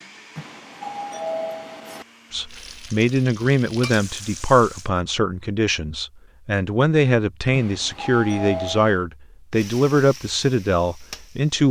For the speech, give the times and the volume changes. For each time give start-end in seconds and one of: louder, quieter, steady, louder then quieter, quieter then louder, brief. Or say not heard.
2.3-11.6 steady.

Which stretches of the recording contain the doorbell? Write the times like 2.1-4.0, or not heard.
0.3-2.0, 7.5-9.0.